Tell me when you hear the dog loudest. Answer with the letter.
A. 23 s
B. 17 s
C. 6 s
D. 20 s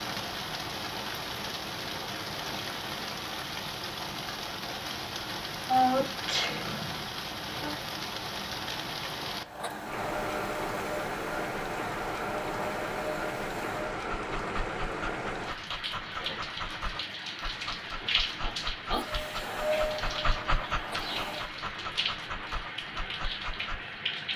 D.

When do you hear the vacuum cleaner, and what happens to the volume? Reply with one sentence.
You can hear the vacuum cleaner from 9.4 to 13.9 s, at a steady volume; and briefly from 18.9 to 21.5 s.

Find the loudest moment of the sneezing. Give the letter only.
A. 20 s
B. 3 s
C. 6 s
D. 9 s
C.